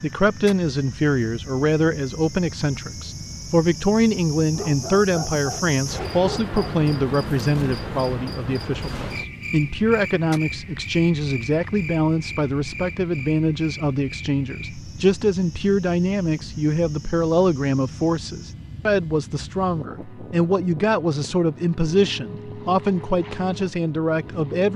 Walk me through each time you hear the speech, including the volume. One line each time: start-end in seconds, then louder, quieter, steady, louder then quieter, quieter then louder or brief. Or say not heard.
0.0-24.7 steady.